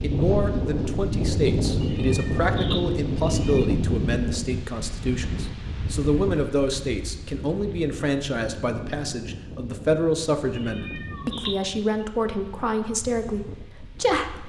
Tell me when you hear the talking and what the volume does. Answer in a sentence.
The talking can be heard from 0.0 to 14.4 s, at a steady volume.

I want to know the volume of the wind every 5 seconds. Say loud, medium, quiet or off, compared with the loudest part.
loud, medium, quiet.